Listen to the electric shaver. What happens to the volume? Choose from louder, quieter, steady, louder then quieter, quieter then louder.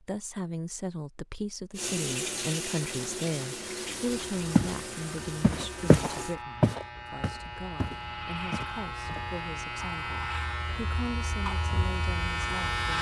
louder.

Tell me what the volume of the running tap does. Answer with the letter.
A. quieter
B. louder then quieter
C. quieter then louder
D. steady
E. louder
A.